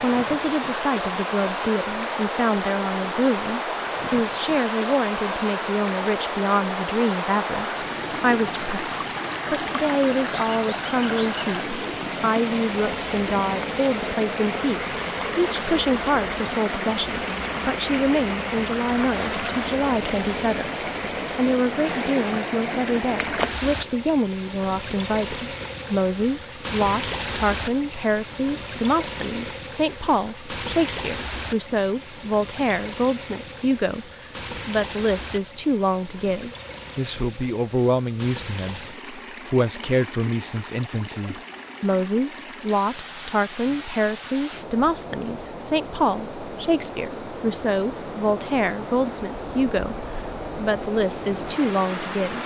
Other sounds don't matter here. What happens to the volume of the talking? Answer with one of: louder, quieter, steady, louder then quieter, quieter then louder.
steady.